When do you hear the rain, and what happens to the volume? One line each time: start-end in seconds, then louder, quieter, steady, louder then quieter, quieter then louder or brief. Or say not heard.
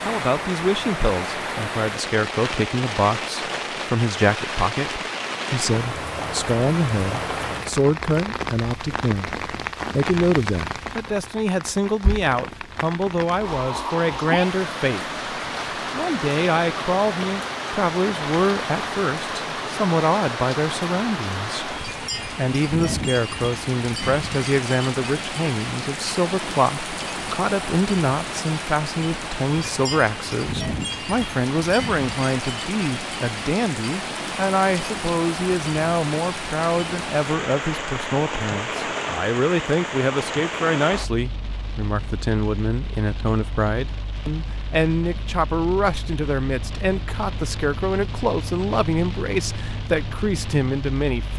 0.0-51.3 quieter.